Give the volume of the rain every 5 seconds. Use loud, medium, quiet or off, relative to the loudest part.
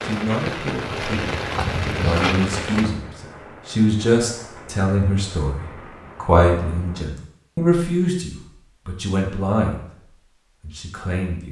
loud, quiet, off.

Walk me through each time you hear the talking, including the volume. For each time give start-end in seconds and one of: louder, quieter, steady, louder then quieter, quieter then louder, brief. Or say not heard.
0.0-9.8 louder
10.6-11.4 brief.